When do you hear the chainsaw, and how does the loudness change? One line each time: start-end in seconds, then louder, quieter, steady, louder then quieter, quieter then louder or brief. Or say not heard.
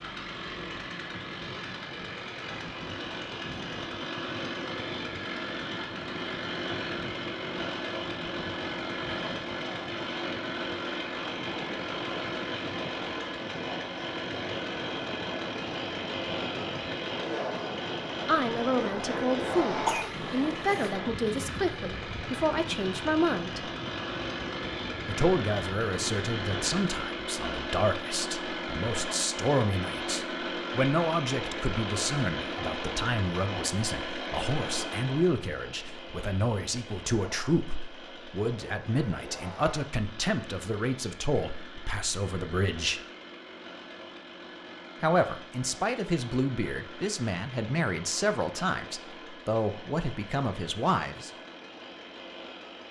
0.0-52.8 quieter.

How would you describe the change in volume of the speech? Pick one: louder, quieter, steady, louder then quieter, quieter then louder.
steady.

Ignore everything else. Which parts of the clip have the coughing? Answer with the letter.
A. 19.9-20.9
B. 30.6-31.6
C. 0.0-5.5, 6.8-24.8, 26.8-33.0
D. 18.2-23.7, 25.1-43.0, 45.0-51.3
A.